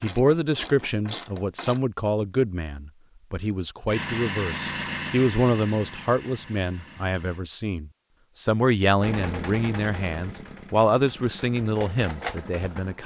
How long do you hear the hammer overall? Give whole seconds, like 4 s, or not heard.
not heard.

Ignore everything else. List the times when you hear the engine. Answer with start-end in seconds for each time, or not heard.
3.9-7.5, 8.9-13.0.